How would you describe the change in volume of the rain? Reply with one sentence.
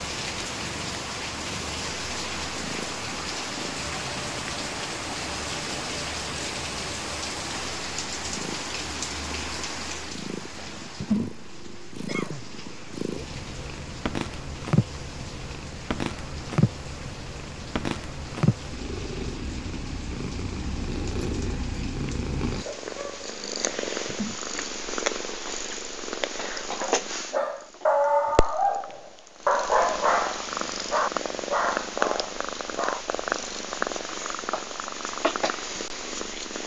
The volume of the rain goes down.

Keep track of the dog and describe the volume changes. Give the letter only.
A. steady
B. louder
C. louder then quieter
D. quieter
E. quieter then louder
D.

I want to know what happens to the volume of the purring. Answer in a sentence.
The volume of the purring goes up.